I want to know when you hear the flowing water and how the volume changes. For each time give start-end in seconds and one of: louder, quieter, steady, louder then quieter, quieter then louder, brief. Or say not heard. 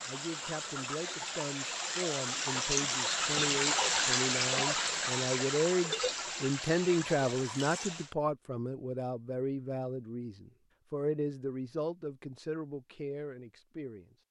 0.0-8.2 louder then quieter.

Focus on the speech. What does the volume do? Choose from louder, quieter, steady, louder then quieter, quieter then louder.
louder then quieter.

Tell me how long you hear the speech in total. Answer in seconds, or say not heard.
14 s.